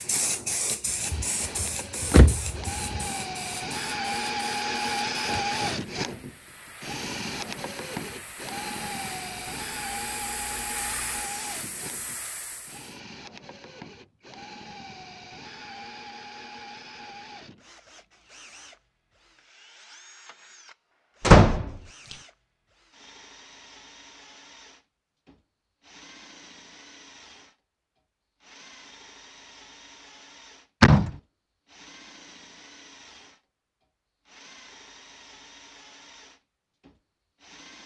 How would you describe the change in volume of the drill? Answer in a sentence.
The volume of the drill goes down.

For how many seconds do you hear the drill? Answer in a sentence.
You can hear the drill for 38 seconds altogether.